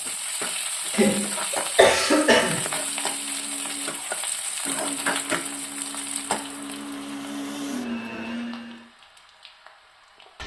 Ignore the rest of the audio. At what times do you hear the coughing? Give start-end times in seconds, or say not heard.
0.9-2.5.